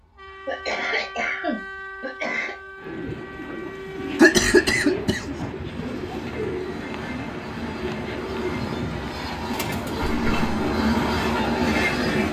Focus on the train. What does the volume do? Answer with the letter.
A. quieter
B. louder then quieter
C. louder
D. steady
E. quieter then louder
C.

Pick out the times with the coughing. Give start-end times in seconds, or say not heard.
0.5-2.5, 4.2-5.2, 10.1-10.5.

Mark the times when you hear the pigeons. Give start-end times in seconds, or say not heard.
2.8-10.2.